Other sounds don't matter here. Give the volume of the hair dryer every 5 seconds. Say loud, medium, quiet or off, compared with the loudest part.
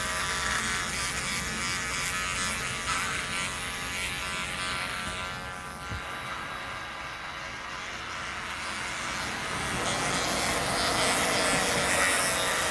off, medium, loud.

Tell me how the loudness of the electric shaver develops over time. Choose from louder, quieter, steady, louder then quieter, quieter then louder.
quieter then louder.